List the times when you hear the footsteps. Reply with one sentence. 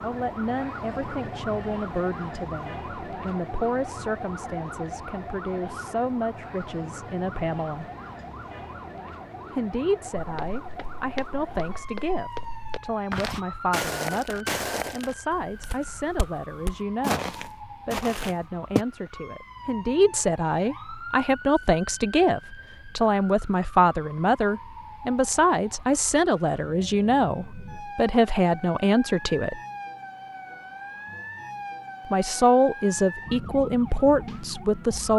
You can hear the footsteps from 10.2 to 18.9 s.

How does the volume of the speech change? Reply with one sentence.
The volume of the speech goes up.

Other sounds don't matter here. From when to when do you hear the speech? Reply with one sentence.
The speech can be heard from 0.0 to 7.9 s, from 9.5 to 29.6 s and from 32.0 to 35.1 s.